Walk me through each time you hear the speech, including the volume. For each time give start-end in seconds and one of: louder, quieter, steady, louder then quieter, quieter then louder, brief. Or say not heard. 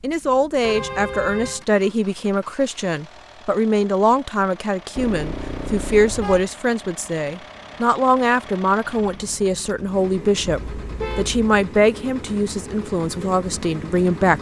0.0-14.3 steady.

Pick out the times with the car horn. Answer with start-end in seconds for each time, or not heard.
0.6-1.6, 5.0-6.5, 10.6-11.4.